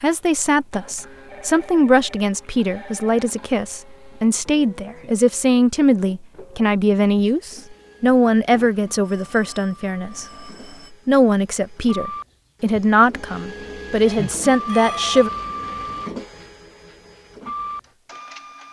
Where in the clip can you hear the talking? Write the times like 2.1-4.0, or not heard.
0.0-10.2, 11.1-15.3.